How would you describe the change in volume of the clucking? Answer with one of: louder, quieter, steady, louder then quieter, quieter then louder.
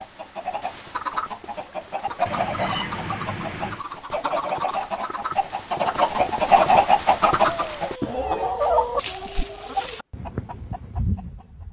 louder then quieter.